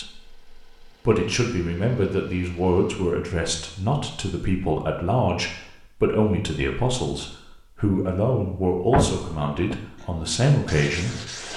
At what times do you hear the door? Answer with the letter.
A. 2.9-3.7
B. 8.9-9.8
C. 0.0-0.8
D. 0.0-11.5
B.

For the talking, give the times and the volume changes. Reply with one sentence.
You can hear the talking from 0.0 to 11.5 s, at a steady volume.